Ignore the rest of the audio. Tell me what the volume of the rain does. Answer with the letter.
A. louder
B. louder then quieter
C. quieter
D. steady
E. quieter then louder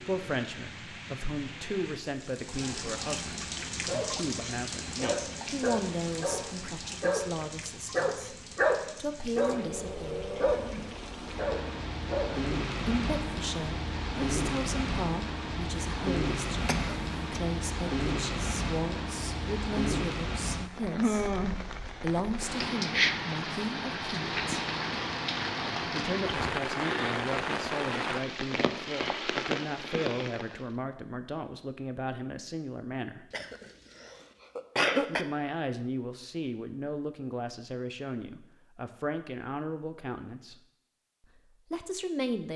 A.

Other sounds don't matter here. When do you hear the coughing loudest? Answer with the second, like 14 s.
35 s.